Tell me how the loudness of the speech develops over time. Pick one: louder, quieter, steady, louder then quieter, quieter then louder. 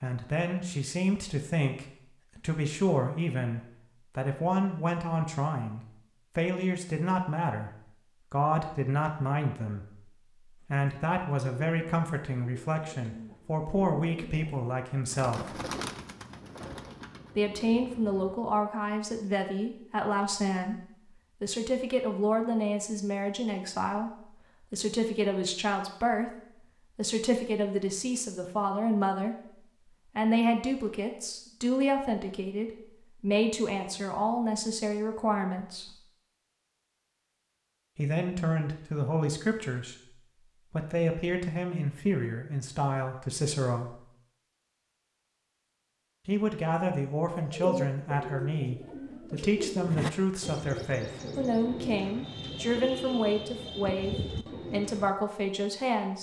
steady.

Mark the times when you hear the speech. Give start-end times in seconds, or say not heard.
0.0-7.7, 8.3-15.6, 17.4-36.0, 38.0-44.0, 46.2-56.1.